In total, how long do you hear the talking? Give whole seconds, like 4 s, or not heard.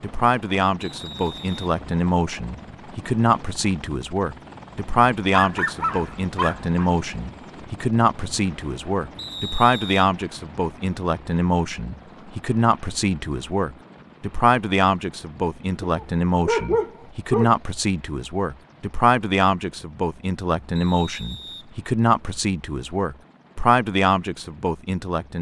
25 s.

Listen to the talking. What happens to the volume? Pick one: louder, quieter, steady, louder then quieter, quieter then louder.
steady.